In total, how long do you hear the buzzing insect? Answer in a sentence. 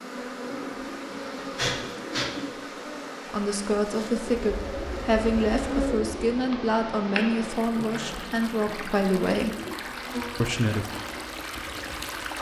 You can hear the buzzing insect for 12 seconds altogether.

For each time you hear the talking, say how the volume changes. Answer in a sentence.
The talking can be heard from 3.3 to 9.6 s, at a steady volume; and briefly from 10.4 to 10.8 s.